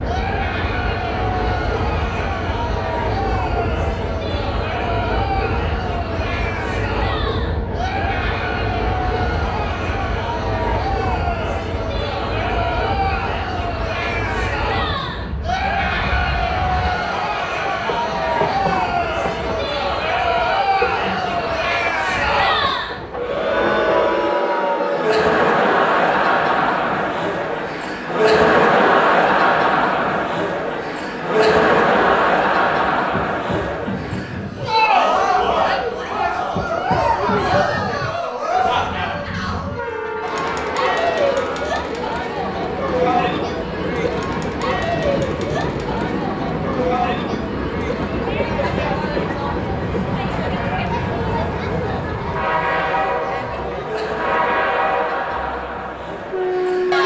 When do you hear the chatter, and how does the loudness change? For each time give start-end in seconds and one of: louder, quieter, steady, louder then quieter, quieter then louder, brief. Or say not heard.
0.0-57.0 louder then quieter.